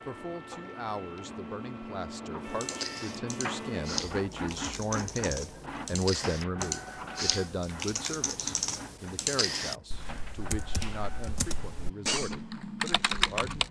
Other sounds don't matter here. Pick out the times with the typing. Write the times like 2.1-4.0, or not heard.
2.4-13.6.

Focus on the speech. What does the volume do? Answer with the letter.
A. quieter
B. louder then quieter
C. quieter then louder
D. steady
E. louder
B.